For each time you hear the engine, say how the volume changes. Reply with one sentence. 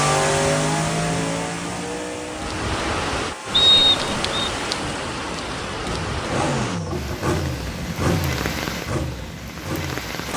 You can hear the engine from 0.0 to 10.3 s, getting quieter then louder.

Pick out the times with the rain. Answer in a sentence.
The rain can be heard from 2.2 to 10.3 s.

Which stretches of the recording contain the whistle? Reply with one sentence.
You can hear the whistle from 3.5 to 4.5 s.